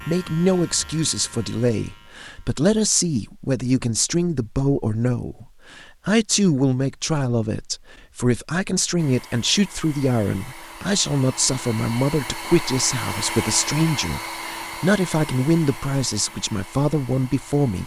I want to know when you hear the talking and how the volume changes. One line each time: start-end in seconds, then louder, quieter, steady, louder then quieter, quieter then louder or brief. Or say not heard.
0.1-17.8 steady.